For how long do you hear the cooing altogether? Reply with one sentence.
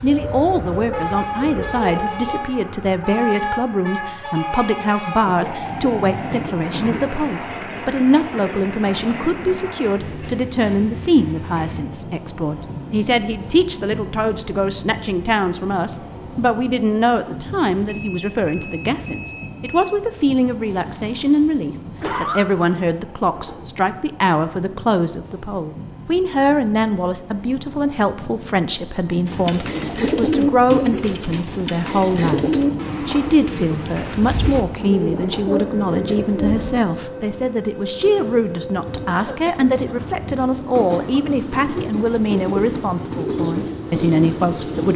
The cooing can be heard for 13 seconds in total.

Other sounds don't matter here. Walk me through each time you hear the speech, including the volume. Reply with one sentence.
The speech can be heard from 0.0 to 44.9 s, at a steady volume.